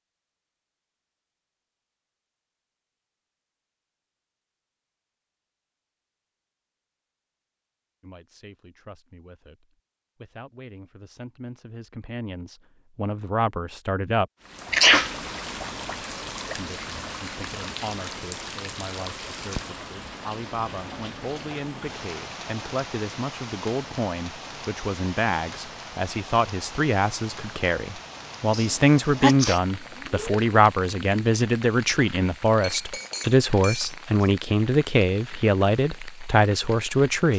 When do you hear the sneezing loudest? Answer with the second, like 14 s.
15 s.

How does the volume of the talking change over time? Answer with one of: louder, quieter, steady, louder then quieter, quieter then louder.
louder.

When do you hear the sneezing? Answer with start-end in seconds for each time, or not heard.
14.7-15.1, 28.5-30.4.